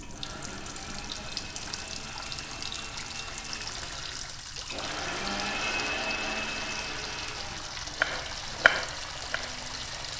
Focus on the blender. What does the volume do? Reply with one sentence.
The volume of the blender goes up, then down.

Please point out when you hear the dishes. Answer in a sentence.
You can't hear the dishes here.